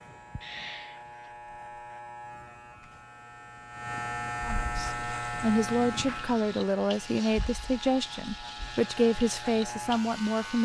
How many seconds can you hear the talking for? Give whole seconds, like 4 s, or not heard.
6 s.